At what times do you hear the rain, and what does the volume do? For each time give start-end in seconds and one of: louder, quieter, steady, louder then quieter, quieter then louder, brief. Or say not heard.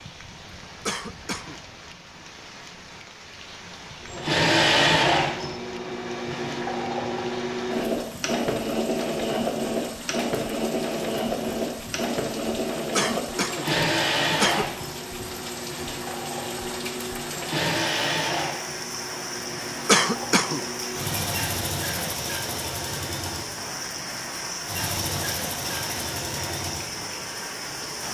0.0-28.0 louder.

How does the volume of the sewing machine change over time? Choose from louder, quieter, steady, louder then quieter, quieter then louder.
quieter.